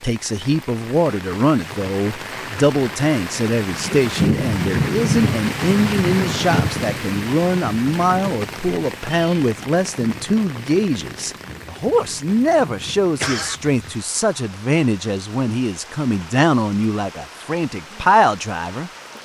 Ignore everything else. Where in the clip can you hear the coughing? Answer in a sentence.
You can hear the coughing from 13.2 to 13.9 s.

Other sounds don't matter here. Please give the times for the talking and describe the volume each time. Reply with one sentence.
The talking can be heard from 0.0 to 18.9 s, at a steady volume.